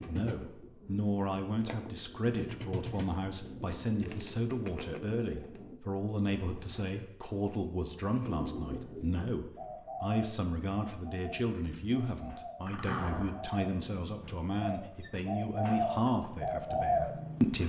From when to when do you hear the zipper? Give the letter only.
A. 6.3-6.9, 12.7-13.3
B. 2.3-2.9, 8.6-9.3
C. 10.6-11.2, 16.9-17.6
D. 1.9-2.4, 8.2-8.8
A.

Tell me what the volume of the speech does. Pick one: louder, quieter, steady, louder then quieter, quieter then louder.
steady.